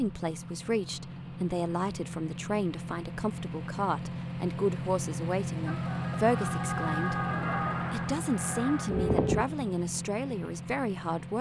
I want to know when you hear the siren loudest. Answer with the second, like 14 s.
9 s.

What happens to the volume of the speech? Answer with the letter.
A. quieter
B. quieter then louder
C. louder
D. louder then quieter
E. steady
E.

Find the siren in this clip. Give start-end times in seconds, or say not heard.
5.7-9.4.